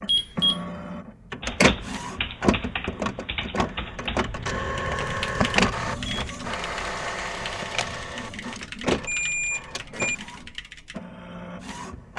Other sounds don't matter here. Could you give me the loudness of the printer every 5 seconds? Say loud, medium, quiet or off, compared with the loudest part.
loud, loud, medium.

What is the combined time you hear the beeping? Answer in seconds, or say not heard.
4 s.